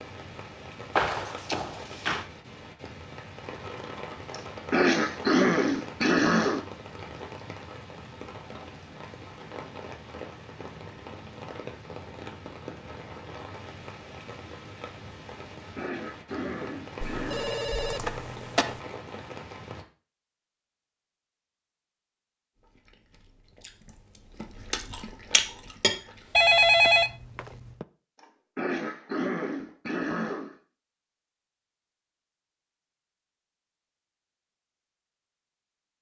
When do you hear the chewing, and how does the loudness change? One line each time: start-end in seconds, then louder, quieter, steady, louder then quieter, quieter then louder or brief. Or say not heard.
22.6-27.6 louder then quieter.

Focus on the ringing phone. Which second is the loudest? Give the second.
27 s.